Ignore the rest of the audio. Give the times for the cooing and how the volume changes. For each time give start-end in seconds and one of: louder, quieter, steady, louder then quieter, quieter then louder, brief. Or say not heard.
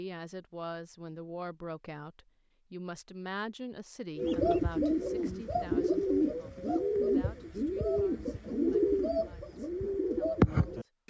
4.2-11.0 steady.